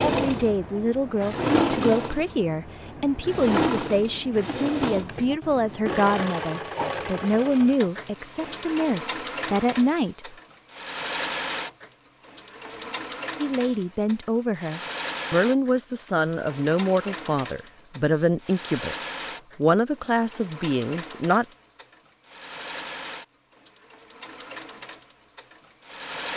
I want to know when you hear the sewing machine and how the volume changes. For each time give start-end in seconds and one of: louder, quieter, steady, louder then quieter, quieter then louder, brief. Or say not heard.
0.0-26.3 quieter.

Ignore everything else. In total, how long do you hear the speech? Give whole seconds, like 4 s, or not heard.
18 s.